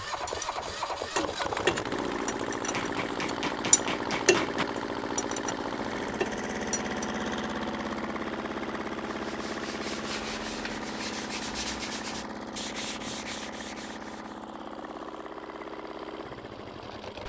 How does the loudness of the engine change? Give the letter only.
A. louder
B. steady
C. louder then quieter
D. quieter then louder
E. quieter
E.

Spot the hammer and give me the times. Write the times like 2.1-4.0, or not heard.
2.7-4.7.